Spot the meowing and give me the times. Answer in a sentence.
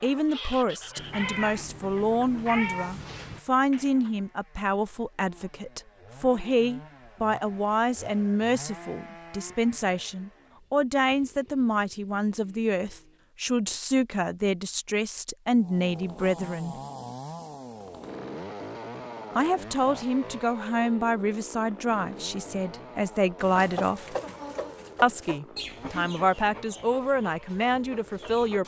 You can hear the meowing from 0.9 to 3.4 s.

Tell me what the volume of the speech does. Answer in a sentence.
The loudness of the speech stays about the same.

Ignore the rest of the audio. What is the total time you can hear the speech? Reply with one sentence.
You can hear the speech for 25 seconds altogether.